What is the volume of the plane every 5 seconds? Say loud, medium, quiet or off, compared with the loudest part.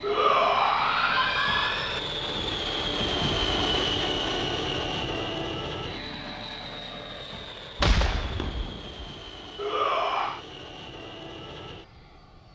loud, medium, quiet.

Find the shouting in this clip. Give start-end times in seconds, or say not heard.
0.0-2.0, 9.6-10.4.